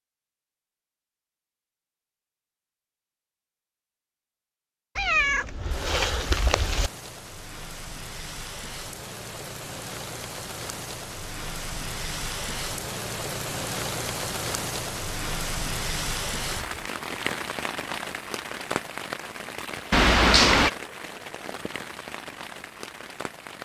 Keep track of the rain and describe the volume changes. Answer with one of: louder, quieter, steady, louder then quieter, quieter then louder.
louder then quieter.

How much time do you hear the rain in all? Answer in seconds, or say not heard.
18 s.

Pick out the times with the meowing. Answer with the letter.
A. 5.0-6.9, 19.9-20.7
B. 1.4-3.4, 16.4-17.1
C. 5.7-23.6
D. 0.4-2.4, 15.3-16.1
A.